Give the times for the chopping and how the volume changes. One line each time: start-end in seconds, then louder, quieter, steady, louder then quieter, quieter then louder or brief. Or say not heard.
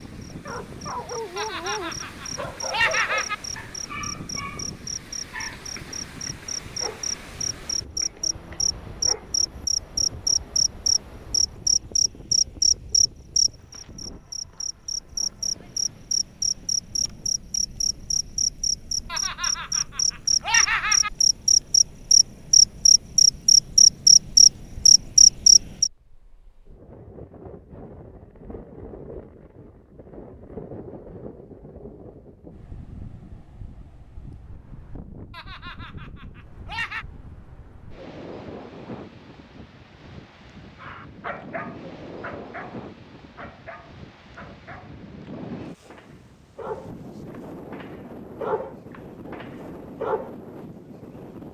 not heard.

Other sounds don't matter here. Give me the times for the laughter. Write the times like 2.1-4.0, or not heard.
1.4-3.4, 19.1-21.1, 35.3-37.0.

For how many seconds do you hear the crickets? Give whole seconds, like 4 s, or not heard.
26 s.